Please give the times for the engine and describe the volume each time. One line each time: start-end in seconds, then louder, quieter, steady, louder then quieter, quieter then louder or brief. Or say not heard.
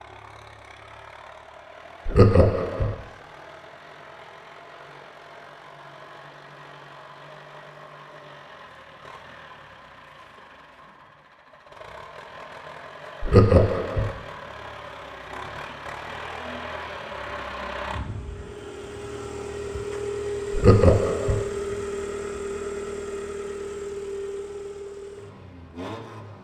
0.0-26.3 louder.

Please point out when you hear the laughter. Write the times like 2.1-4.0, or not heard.
2.0-3.0, 13.2-14.1, 20.5-21.4.